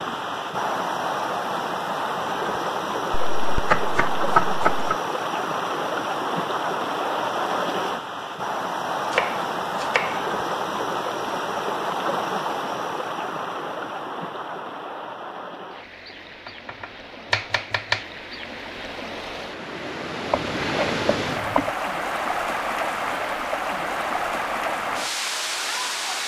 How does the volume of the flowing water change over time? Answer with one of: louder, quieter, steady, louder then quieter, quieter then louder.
quieter then louder.